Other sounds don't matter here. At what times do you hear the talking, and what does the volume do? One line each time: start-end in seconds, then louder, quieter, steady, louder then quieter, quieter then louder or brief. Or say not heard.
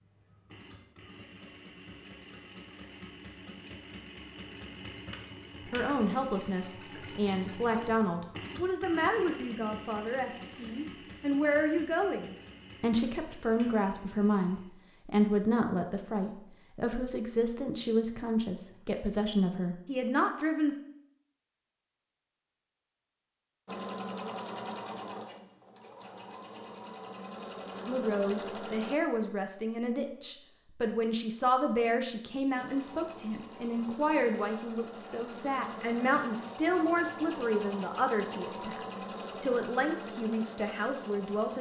5.7-20.8 steady
27.9-41.5 steady.